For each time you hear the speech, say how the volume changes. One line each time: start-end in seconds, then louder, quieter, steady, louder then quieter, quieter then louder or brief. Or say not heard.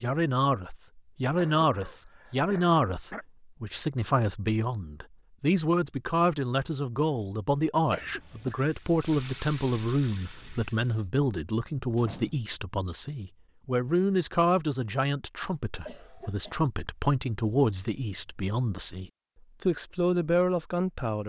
0.0-21.2 steady.